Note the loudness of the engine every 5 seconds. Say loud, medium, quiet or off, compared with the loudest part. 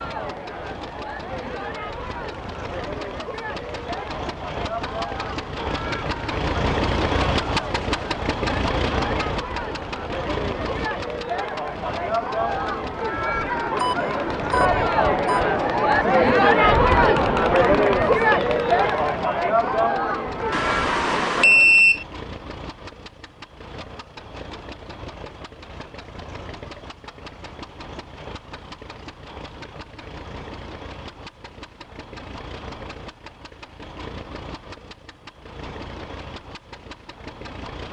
medium, loud, medium, quiet, quiet, quiet, quiet, quiet.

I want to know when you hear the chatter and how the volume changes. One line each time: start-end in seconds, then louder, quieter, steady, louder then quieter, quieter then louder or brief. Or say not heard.
0.0-21.9 louder.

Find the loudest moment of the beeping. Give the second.
22 s.